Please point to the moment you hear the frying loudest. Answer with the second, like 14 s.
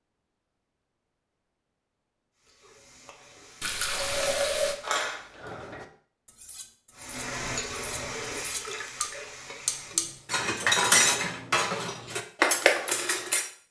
8 s.